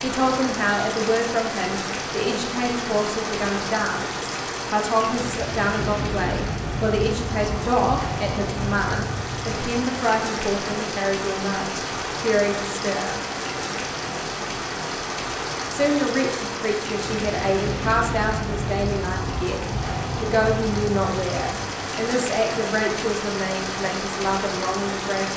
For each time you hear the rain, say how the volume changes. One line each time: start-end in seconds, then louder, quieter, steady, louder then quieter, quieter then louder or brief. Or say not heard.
0.0-25.3 steady.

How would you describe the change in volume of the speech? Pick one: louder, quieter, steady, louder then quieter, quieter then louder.
steady.